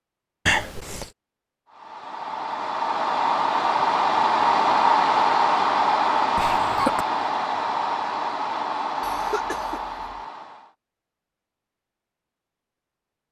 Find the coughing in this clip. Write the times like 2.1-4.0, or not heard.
0.5-1.1, 6.3-7.0, 9.0-10.0.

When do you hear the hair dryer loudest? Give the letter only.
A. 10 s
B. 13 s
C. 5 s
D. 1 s
C.